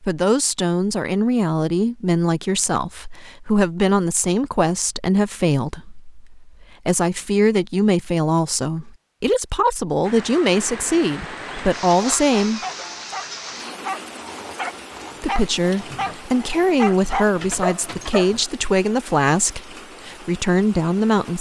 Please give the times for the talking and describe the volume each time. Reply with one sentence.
You can hear the talking from 0.0 to 12.6 s, at a steady volume; and from 15.2 to 21.3 s, at a steady volume.